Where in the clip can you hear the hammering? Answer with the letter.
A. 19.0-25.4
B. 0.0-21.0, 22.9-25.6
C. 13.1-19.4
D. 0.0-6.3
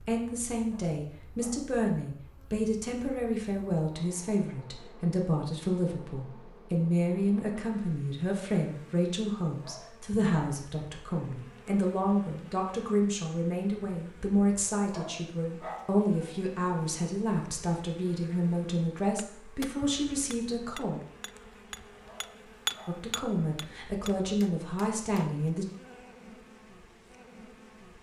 A.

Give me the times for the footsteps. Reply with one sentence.
You can't hear the footsteps here.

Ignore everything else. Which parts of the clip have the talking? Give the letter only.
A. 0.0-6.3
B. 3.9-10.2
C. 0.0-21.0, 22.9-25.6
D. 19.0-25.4
C.